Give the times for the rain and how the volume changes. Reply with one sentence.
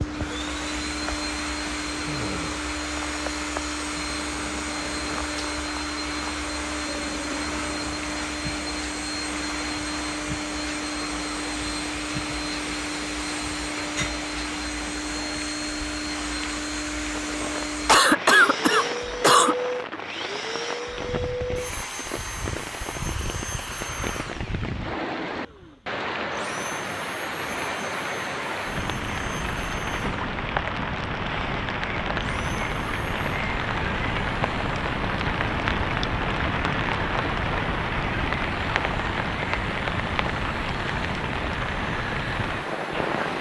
You can hear the rain from 0.0 to 43.3 s, getting louder.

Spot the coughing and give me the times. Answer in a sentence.
The coughing can be heard from 17.9 to 19.6 s.